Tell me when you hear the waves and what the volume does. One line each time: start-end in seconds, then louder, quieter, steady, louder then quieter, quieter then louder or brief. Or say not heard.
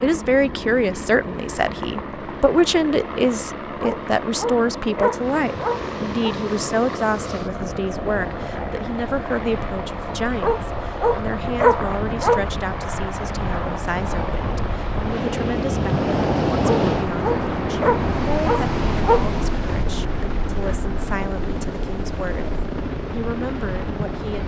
5.2-24.4 louder then quieter.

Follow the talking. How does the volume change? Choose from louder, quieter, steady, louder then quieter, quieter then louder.
quieter.